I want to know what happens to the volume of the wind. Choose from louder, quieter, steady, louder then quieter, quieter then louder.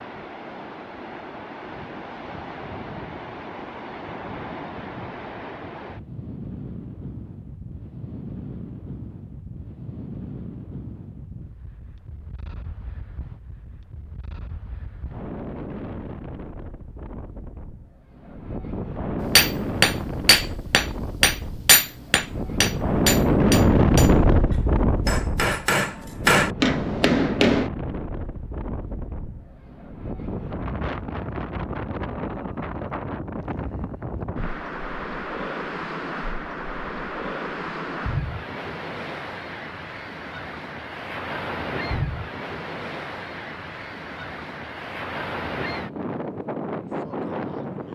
louder then quieter.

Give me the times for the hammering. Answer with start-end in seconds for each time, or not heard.
19.4-27.7.